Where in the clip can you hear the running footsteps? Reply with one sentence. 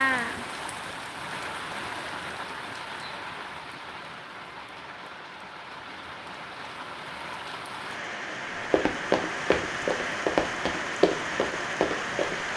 The running footsteps can be heard from 8.7 to 12.5 s.